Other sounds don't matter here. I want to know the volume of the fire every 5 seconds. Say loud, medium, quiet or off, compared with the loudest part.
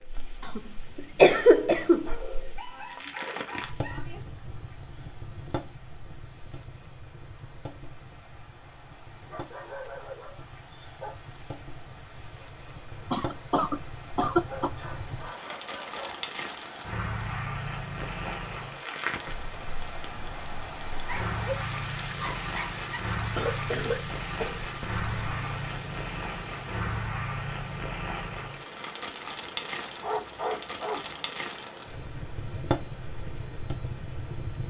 medium, medium, medium, loud, loud, loud, loud.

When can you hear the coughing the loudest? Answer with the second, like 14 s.
1 s.